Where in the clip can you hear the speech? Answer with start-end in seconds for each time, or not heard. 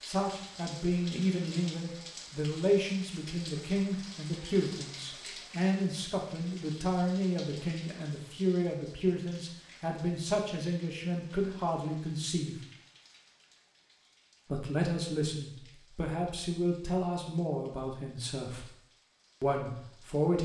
0.1-12.6, 14.4-18.7, 19.4-20.3.